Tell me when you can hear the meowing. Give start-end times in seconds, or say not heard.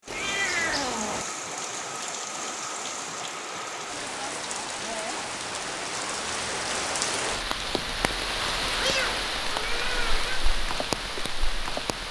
0.1-1.2, 8.8-10.2.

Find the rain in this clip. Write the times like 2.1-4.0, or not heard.
0.0-12.0.